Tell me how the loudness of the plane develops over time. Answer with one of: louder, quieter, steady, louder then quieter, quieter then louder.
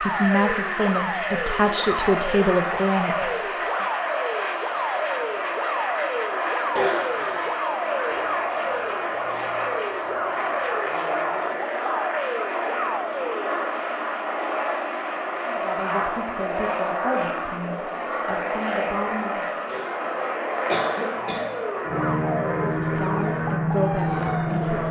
steady.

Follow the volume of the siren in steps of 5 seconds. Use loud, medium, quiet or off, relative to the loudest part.
loud, loud, loud, off, loud.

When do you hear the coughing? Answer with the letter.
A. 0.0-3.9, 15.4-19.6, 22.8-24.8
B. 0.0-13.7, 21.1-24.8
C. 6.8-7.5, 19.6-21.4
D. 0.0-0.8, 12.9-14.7
C.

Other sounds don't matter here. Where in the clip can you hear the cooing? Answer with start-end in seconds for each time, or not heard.
not heard.